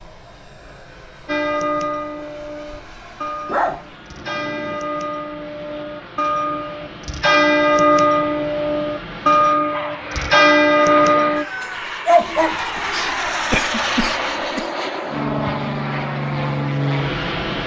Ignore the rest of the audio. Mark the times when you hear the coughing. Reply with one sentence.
You can hear the coughing from 12.2 to 14.7 s.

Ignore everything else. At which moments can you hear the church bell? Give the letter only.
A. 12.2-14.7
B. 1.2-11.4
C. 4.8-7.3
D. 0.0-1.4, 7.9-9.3
B.